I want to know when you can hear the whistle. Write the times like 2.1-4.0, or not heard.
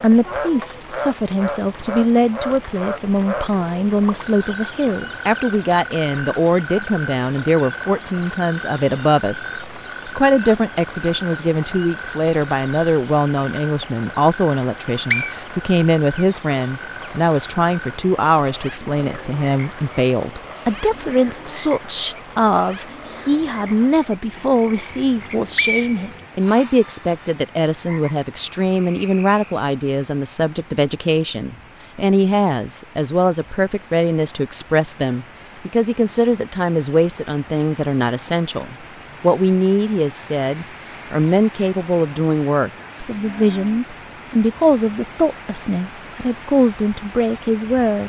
14.5-15.3, 25.1-26.2.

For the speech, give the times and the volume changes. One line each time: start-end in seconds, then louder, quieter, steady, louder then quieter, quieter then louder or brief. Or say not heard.
0.0-48.0 steady.